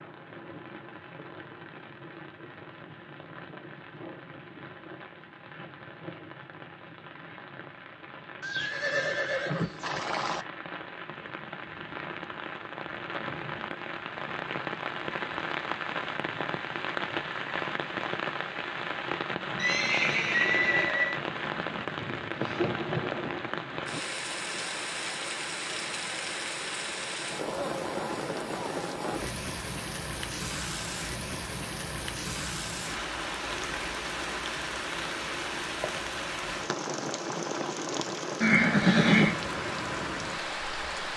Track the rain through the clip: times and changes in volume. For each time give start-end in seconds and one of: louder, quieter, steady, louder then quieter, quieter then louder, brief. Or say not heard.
0.0-41.1 louder.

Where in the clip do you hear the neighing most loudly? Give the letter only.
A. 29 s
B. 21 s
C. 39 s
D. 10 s
C.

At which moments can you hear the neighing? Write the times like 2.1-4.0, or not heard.
8.4-10.4, 19.6-21.2, 38.4-39.4.